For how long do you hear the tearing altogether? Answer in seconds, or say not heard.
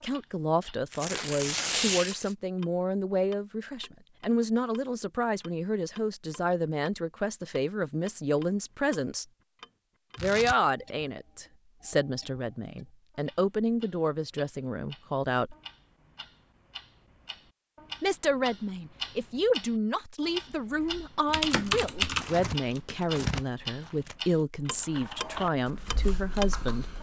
4 s.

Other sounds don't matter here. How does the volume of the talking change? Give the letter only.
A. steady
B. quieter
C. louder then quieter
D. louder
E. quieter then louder
A.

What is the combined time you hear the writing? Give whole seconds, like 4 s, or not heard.
not heard.